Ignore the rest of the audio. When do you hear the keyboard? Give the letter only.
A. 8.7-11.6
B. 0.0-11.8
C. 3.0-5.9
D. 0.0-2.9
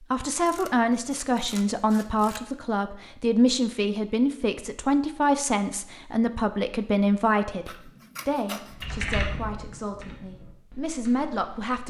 A.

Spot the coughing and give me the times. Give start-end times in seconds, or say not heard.
not heard.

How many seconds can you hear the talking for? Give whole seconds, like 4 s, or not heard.
12 s.